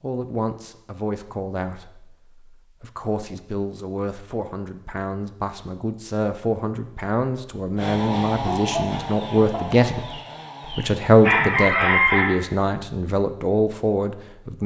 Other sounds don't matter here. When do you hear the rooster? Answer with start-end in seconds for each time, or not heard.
8.4-12.3.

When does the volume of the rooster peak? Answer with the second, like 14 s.
12 s.